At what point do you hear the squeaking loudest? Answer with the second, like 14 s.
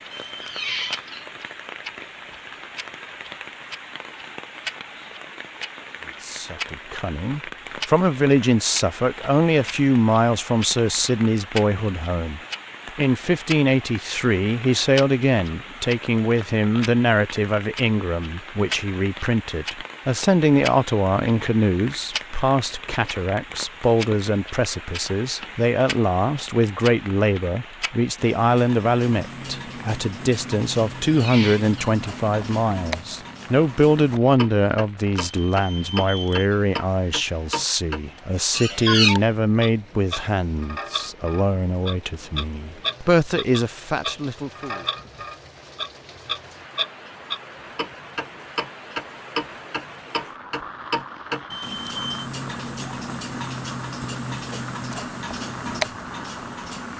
39 s.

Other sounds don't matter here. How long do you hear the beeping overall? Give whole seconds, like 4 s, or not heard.
3 s.